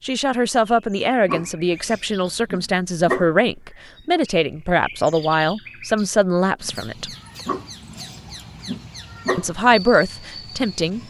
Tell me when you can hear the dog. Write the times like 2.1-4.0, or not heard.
1.2-3.4, 7.5-9.5.